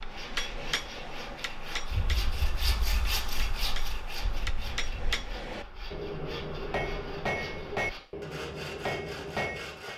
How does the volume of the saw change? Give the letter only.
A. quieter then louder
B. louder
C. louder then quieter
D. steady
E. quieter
C.